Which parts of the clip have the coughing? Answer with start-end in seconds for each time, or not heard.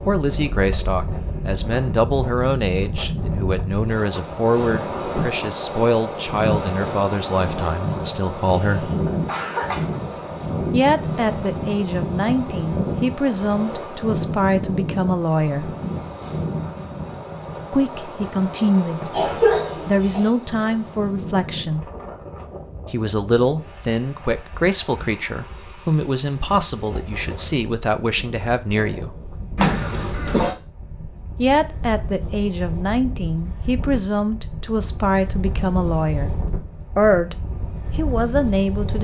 8.6-9.9, 19.1-20.3, 29.6-30.6.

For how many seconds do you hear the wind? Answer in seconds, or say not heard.
39 s.